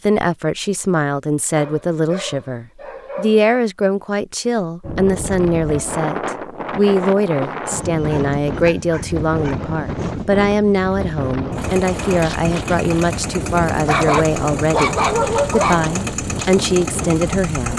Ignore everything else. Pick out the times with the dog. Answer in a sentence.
The dog can be heard from 1.6 to 3.5 s, from 7.8 to 10.2 s and from 13.8 to 15.9 s.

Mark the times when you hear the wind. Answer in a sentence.
The wind can be heard from 4.8 to 17.7 s.